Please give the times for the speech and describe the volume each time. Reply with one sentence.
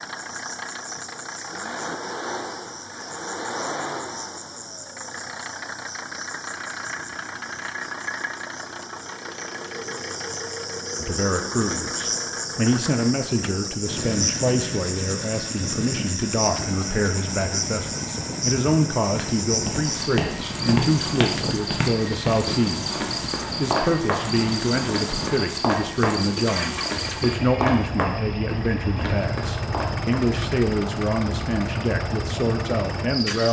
The speech can be heard from 10.9 to 33.4 s, at a steady volume.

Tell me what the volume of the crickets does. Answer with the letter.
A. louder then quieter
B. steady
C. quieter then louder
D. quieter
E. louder
E.